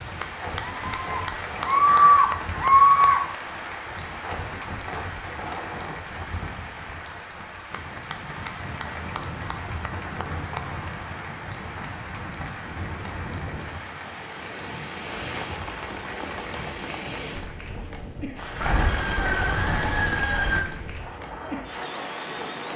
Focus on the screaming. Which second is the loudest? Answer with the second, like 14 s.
3 s.